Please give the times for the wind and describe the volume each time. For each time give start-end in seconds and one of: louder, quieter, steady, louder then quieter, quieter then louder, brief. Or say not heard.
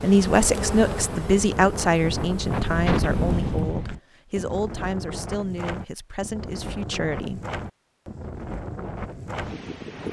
0.0-10.0 louder then quieter.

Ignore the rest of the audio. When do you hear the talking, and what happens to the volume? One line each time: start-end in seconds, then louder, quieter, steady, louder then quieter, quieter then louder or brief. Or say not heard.
0.0-7.4 quieter.